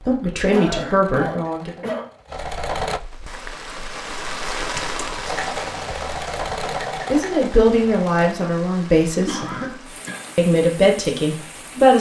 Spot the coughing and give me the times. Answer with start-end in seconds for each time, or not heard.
0.5-2.1, 4.8-5.3, 9.2-10.2.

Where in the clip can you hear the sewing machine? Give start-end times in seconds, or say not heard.
0.0-3.0, 5.2-8.3.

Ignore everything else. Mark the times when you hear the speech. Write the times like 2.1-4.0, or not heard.
0.1-1.7, 7.0-9.5, 10.3-11.9.